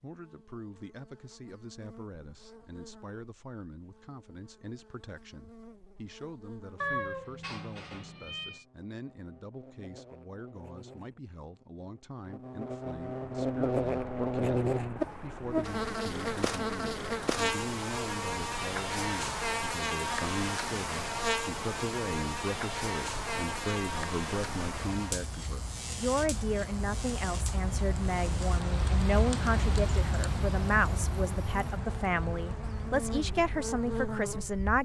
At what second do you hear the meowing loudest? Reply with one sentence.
The loudest moment of the meowing is at 7 seconds.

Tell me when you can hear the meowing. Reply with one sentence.
You can hear the meowing from 6.8 to 8.7 s.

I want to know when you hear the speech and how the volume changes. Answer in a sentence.
The speech can be heard from 0.0 to 34.8 s, getting louder.